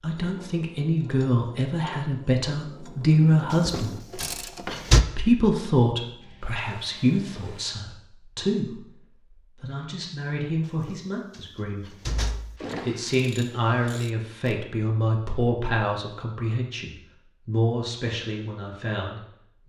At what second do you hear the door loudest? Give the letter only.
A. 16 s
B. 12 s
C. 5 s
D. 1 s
C.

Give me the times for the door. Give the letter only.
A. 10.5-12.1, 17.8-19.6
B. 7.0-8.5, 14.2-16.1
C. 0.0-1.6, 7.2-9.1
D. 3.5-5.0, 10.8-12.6
D.